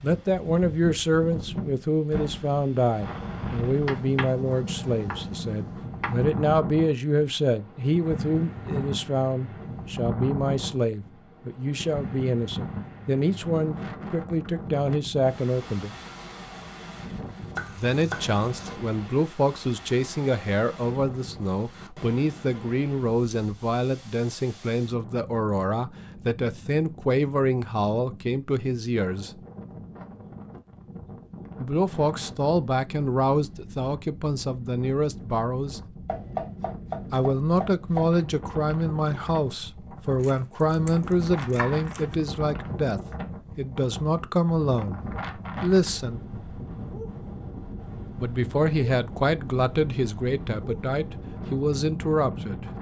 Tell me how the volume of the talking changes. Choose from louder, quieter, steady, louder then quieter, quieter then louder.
steady.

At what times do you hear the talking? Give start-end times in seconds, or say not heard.
0.0-15.9, 17.7-29.4, 31.6-35.8, 37.1-46.2, 48.1-52.6.